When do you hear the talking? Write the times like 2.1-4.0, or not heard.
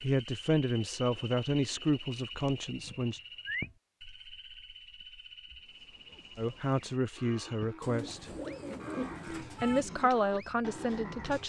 0.0-3.2, 6.3-8.2, 9.2-11.4.